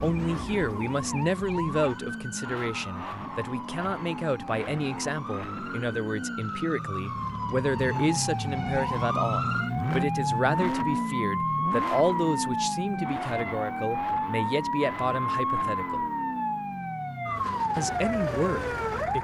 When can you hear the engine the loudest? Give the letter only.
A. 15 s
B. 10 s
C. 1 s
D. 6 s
B.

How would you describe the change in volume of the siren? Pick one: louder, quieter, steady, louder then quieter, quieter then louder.
louder.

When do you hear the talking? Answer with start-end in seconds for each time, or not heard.
0.0-16.1, 17.8-19.1.